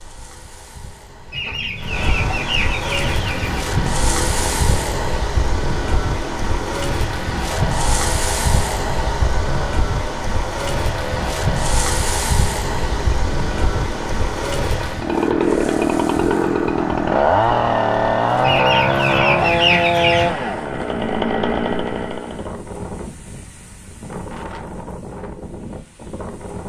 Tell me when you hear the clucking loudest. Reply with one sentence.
The loudest moment of the clucking is at 20 seconds.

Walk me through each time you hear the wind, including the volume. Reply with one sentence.
The wind can be heard from 0.0 to 26.6 s, getting quieter.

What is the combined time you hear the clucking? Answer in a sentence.
You can hear the clucking for 4 seconds altogether.